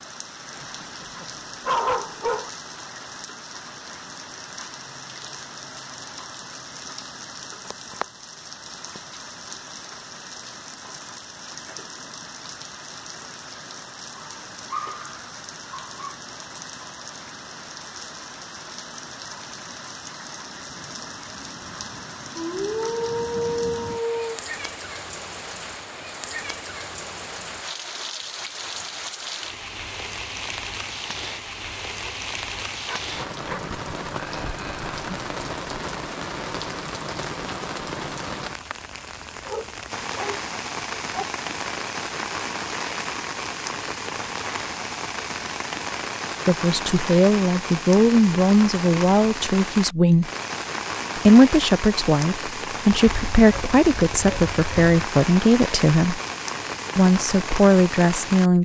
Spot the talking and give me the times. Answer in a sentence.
You can hear the talking from 46.5 to 50.3 s, from 51.1 to 56.2 s and from 57.0 to 58.6 s.